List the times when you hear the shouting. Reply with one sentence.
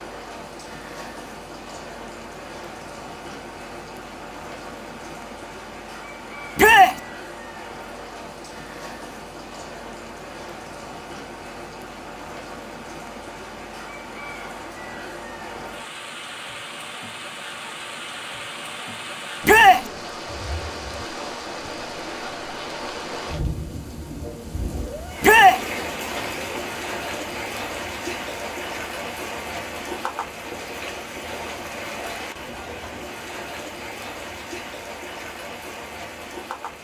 You can hear the shouting from 6.5 to 7.0 s, from 19.4 to 19.9 s and from 25.2 to 25.6 s.